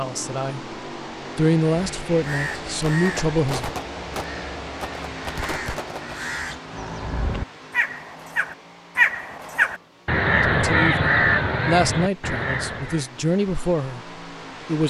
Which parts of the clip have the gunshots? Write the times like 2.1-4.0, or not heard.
2.9-6.2.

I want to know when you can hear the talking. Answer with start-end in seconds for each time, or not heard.
0.0-0.8, 1.4-3.8, 10.3-14.8.